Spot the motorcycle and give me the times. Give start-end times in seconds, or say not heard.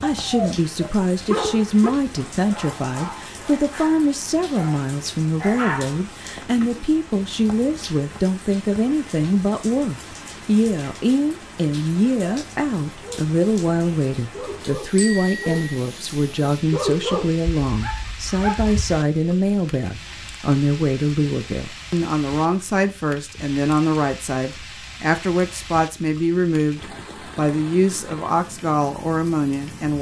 not heard.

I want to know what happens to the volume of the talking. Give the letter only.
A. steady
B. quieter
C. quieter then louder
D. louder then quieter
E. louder
A.